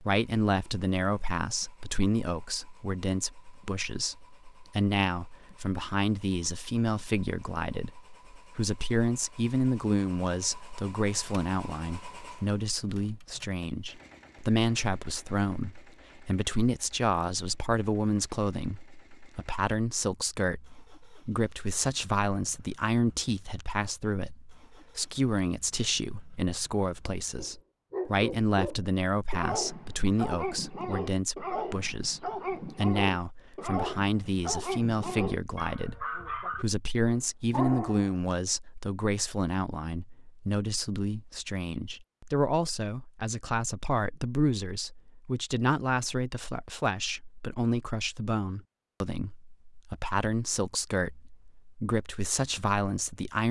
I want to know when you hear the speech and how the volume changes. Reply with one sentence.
You can hear the speech from 0.0 to 53.4 s, at a steady volume.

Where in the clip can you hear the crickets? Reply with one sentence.
The crickets can't be heard in this clip.